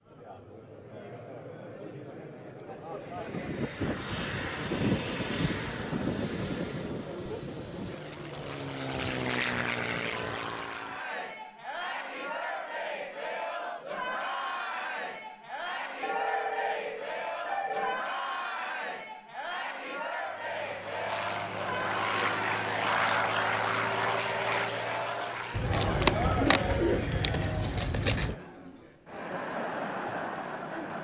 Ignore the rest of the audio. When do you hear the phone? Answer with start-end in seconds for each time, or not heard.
9.8-10.4, 16.0-18.0.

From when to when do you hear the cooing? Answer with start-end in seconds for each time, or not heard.
25.5-28.4.